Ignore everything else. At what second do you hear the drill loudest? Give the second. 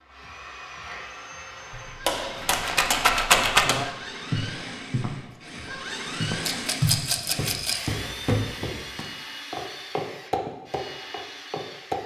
6 s.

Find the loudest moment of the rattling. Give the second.
3 s.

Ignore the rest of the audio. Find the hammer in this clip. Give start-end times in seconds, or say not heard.
2.0-3.9.